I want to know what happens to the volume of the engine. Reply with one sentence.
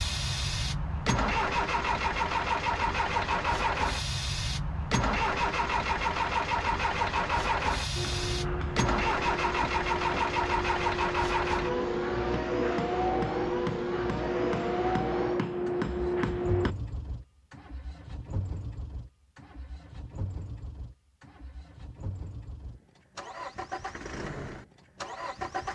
The loudness of the engine goes down.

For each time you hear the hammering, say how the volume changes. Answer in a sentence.
The hammering can be heard from 8.0 to 16.8 s, getting louder.